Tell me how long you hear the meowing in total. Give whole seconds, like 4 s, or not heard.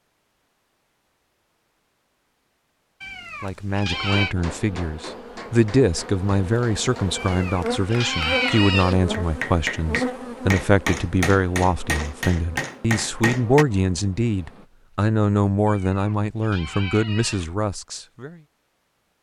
5 s.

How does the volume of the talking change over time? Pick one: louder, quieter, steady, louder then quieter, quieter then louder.
steady.